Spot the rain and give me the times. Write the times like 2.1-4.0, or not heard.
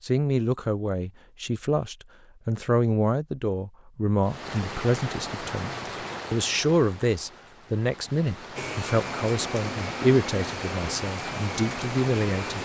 4.2-12.6.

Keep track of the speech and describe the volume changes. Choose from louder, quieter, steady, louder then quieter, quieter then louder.
steady.